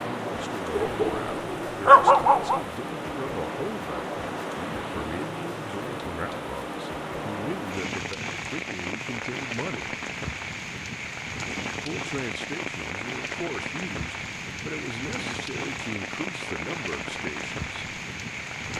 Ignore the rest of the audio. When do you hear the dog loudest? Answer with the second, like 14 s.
2 s.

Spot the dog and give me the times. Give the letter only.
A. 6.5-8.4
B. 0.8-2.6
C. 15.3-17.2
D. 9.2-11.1
B.